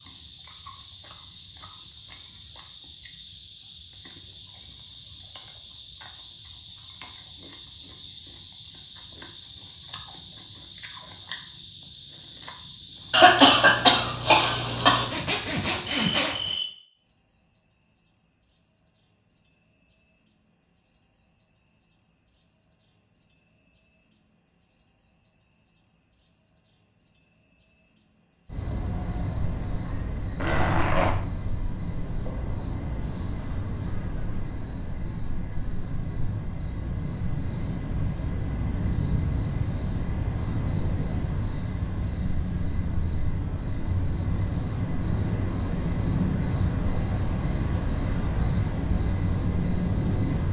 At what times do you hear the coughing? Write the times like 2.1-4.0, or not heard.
13.1-15.1.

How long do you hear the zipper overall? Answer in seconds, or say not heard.
2 s.